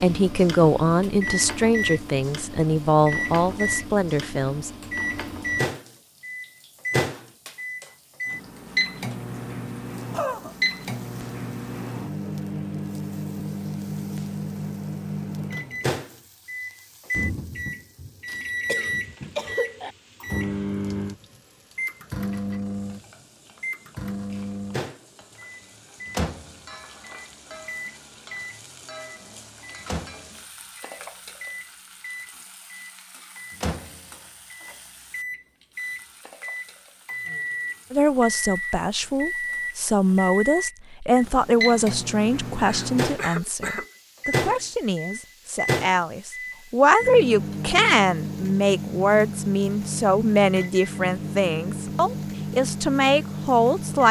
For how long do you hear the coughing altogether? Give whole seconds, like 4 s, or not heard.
3 s.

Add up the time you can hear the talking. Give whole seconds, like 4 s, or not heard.
21 s.